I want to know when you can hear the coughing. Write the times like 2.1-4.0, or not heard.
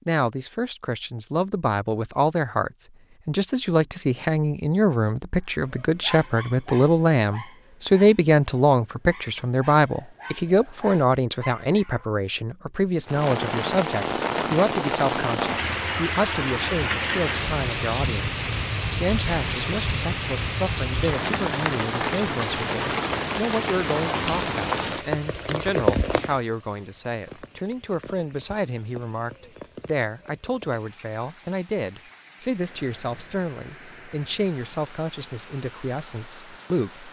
not heard.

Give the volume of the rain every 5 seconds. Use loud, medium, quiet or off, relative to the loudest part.
off, off, loud, loud, loud, medium, quiet, quiet.